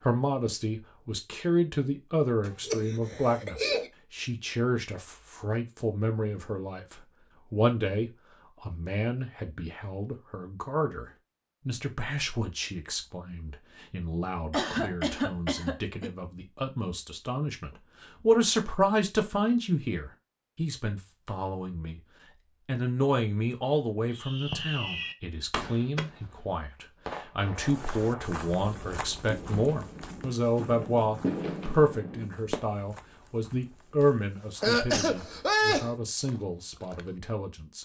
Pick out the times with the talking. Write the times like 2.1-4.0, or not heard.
0.0-22.0, 22.6-37.7.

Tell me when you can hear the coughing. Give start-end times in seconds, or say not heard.
2.5-3.9, 14.5-16.1, 34.6-35.9.